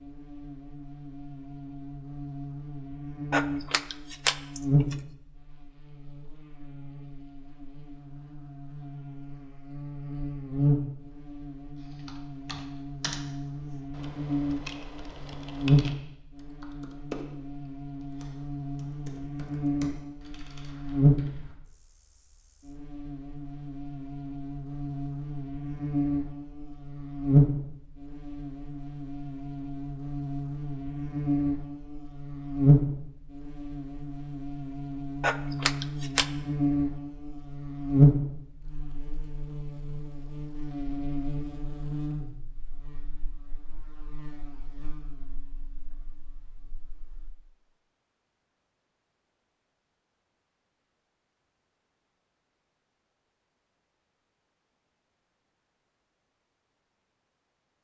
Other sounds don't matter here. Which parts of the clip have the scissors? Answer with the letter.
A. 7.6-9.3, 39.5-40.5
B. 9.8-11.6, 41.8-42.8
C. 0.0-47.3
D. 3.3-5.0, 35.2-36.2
D.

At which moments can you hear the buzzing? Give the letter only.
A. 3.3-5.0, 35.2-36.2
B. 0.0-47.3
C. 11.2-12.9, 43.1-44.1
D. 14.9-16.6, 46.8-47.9
B.